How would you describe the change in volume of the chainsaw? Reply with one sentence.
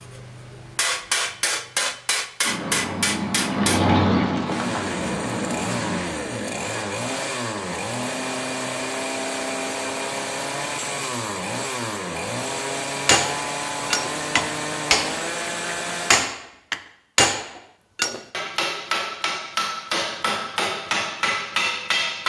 The loudness of the chainsaw stays about the same.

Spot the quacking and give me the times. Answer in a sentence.
The quacking can be heard from 2.4 to 6.0 s.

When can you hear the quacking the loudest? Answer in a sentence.
The volume of the quacking peaks at 4 seconds.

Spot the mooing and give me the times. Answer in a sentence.
The mooing can't be heard in this clip.